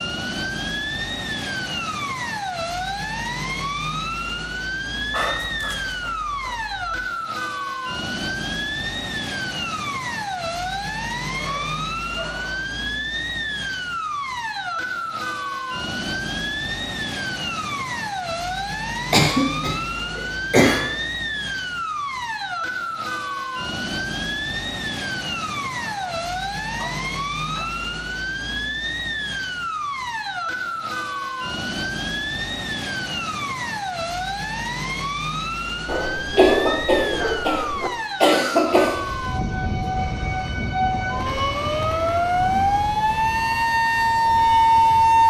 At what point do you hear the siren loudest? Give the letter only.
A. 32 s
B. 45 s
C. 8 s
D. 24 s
B.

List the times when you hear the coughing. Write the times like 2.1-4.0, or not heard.
19.1-20.9, 36.3-39.0.